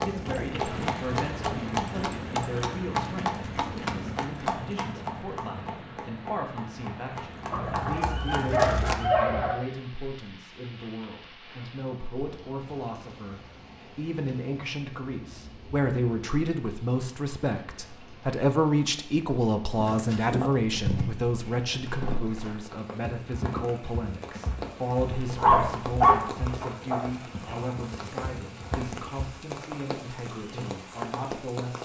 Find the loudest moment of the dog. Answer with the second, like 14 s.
26 s.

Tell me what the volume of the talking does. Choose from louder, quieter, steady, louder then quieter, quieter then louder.
louder then quieter.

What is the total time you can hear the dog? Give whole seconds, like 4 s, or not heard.
4 s.